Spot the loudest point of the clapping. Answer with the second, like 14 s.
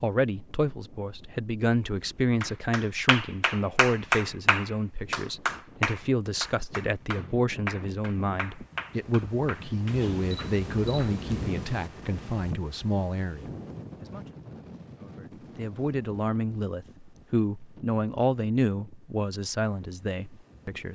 4 s.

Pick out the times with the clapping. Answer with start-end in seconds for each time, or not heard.
2.4-11.2.